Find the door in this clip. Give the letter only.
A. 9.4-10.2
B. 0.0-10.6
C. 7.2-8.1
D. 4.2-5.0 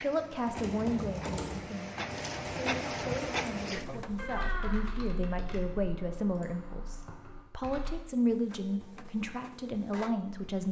D.